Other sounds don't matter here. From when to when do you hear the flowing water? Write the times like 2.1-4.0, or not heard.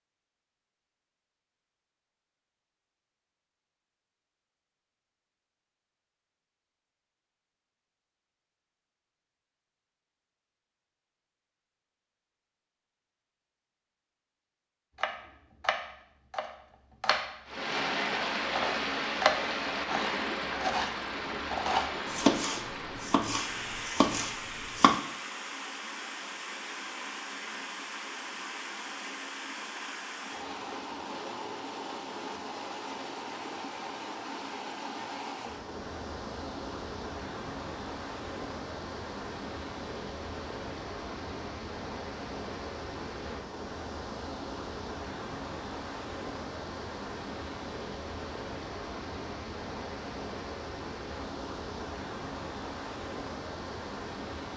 17.4-54.5.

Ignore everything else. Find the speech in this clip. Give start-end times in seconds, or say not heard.
not heard.